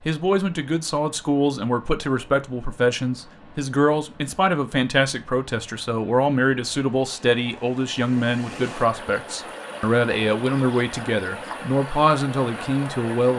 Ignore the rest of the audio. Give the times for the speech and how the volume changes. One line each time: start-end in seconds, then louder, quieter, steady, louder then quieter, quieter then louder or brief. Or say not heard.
0.0-13.3 steady.